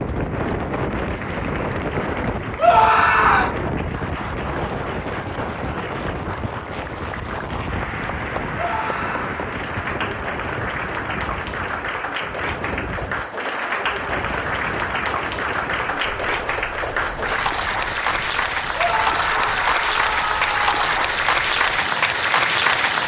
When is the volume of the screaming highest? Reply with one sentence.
The loudest moment of the screaming is at 3 seconds.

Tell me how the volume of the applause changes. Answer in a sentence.
The volume of the applause goes up.